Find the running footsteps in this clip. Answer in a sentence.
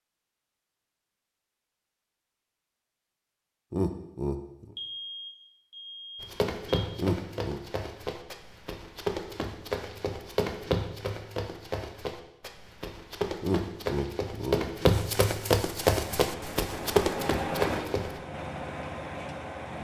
You can hear the running footsteps from 6.2 to 18.2 s.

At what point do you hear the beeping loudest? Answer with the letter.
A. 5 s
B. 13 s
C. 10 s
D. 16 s
A.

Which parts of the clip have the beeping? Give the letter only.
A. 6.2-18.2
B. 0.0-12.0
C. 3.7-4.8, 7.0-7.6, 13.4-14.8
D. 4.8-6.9
D.